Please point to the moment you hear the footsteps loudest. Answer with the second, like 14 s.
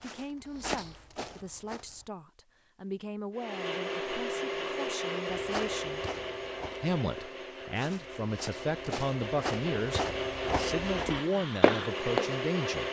12 s.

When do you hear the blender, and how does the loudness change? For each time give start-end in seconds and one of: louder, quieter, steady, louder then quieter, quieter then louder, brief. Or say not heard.
3.3-12.8 quieter then louder.